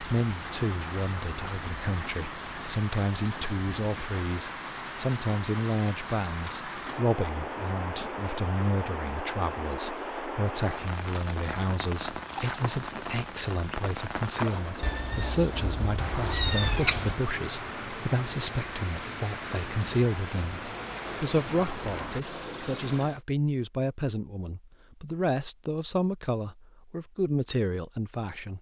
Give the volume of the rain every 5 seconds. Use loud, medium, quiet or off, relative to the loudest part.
loud, loud, loud, loud, loud, off.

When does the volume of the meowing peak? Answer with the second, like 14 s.
17 s.